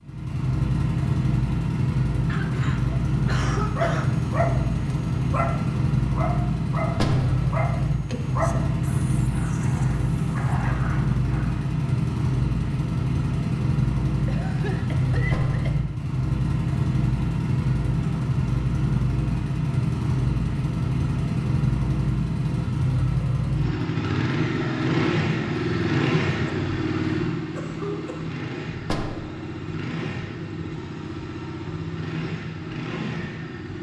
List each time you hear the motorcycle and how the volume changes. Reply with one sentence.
You can hear the motorcycle from 0.0 to 33.7 s, getting quieter.